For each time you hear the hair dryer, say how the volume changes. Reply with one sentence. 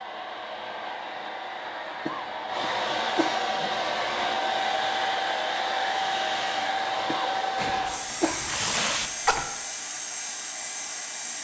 The hair dryer can be heard from 0.0 to 11.3 s, getting louder then quieter.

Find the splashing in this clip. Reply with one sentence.
You can hear the splashing from 7.5 to 9.4 s.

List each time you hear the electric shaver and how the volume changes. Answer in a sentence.
The electric shaver can't be heard in this clip.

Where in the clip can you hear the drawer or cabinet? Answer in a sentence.
You can't hear the drawer or cabinet here.